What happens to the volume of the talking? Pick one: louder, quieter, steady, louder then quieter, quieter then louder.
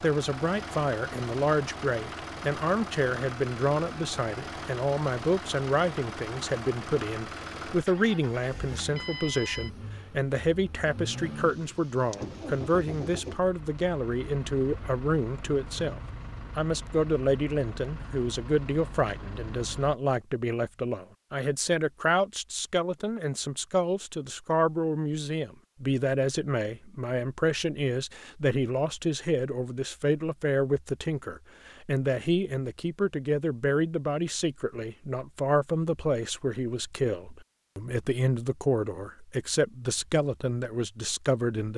steady.